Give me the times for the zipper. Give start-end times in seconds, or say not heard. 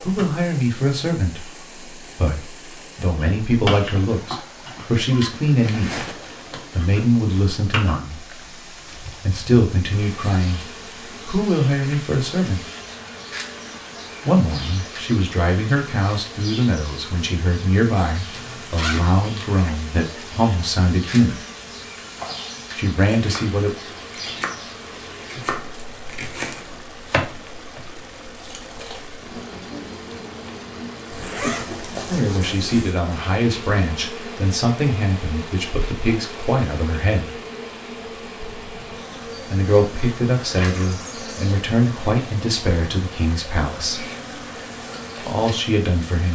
5.6-6.8, 18.3-19.6, 31.1-33.0.